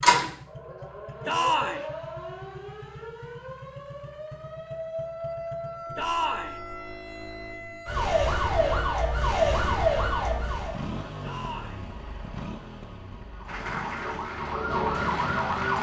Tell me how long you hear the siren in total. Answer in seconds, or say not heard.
13 s.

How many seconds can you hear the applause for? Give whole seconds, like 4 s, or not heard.
2 s.